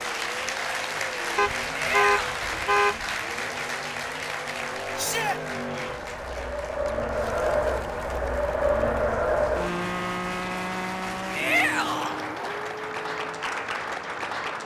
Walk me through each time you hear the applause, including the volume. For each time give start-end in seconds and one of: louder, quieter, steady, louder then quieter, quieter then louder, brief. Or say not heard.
0.0-14.6 quieter then louder.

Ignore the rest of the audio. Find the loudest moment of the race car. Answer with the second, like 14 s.
9 s.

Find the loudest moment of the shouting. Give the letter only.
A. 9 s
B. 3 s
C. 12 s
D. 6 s
C.